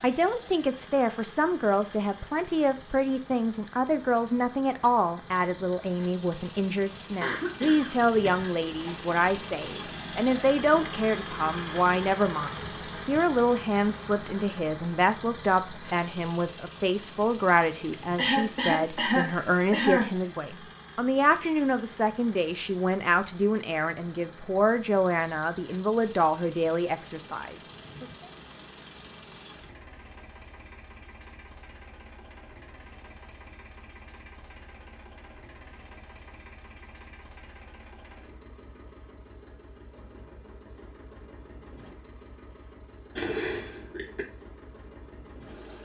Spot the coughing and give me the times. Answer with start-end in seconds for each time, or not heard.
7.2-8.9, 18.1-20.1, 43.1-44.2.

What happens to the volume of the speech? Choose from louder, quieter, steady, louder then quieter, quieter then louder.
steady.